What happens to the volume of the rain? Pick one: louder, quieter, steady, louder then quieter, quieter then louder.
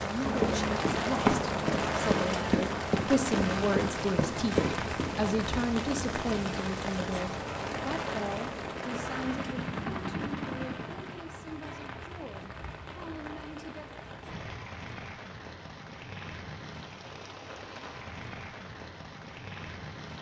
quieter.